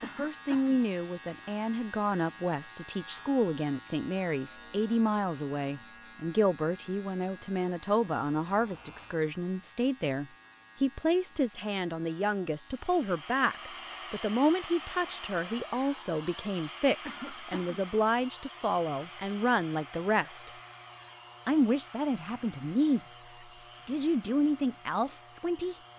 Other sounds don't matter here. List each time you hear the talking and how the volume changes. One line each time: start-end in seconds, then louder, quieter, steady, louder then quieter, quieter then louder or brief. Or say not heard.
0.0-20.5 steady
21.4-23.0 brief
23.9-25.8 brief.